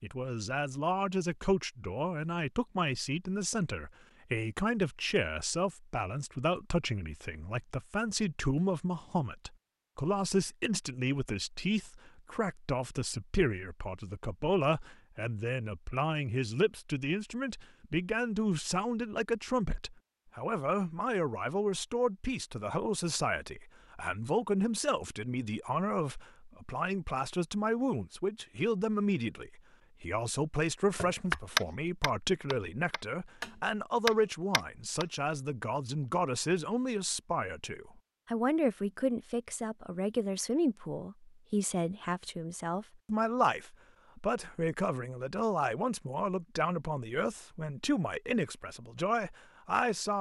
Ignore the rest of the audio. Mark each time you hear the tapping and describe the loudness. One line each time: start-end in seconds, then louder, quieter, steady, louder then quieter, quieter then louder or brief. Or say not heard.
30.9-35.0 quieter then louder.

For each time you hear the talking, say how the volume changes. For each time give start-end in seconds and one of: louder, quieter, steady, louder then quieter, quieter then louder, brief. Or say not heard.
0.0-50.1 steady.